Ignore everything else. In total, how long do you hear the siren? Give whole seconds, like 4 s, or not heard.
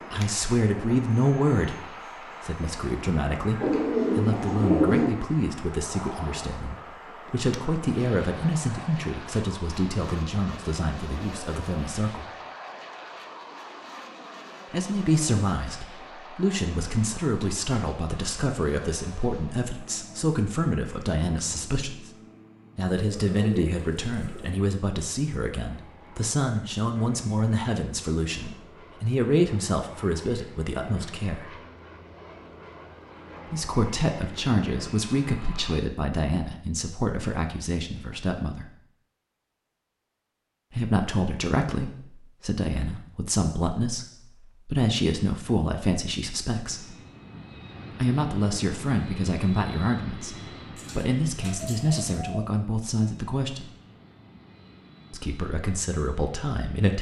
not heard.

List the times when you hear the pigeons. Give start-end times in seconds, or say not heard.
3.6-5.2, 22.9-24.5, 50.8-52.5.